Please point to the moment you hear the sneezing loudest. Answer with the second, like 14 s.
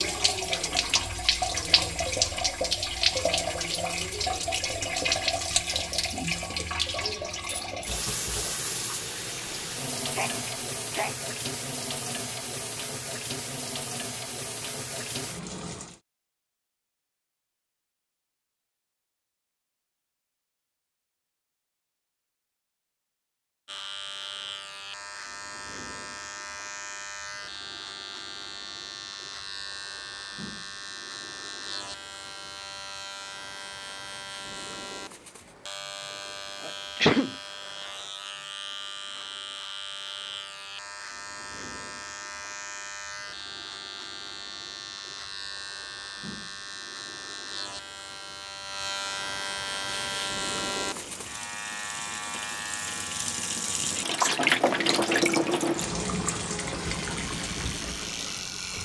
37 s.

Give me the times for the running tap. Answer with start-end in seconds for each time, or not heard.
0.0-16.0, 49.9-58.8.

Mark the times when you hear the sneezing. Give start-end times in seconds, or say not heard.
9.4-11.2, 36.6-37.4.